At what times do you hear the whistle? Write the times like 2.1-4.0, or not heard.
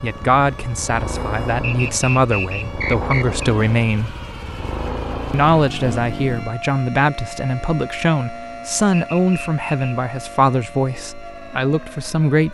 1.6-3.5, 8.9-10.0.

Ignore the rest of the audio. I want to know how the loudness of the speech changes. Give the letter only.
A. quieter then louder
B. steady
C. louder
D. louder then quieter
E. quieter
B.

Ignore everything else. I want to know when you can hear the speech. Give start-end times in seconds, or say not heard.
0.0-4.2, 5.3-12.4.